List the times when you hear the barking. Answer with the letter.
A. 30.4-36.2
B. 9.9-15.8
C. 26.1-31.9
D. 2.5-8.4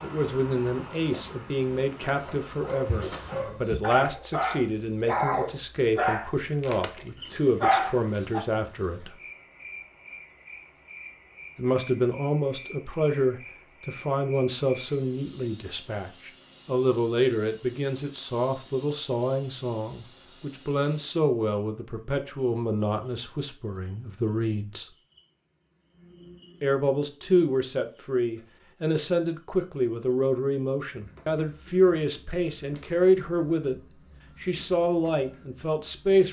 D.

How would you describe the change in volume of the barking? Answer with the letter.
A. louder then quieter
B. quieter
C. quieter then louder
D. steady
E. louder
E.